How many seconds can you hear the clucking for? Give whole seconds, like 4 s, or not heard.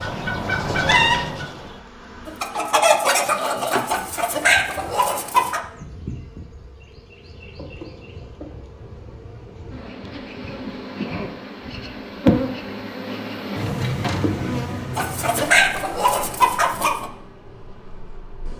8 s.